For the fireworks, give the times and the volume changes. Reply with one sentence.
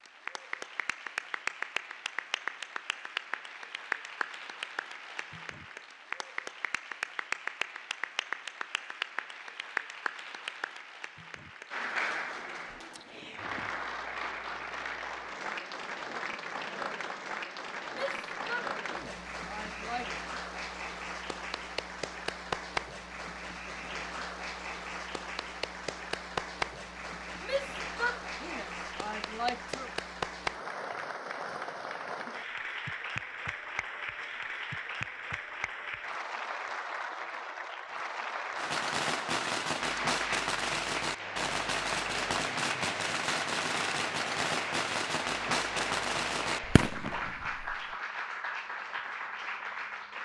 The fireworks can be heard from 38.5 to 48.0 s, at a steady volume.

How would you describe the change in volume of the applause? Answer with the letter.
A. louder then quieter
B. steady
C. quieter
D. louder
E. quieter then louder
B.